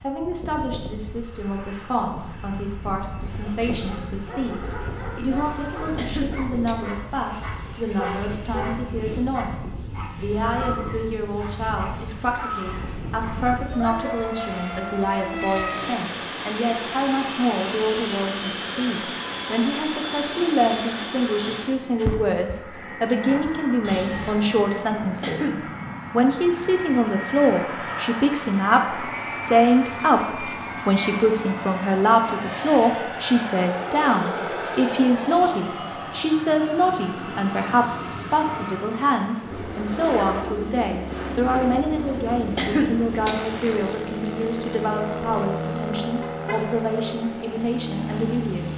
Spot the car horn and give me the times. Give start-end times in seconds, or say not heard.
7.8-8.8, 23.8-24.4, 46.2-46.7.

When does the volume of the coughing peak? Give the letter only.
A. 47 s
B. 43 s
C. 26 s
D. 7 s
B.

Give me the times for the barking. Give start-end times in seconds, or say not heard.
3.4-14.1.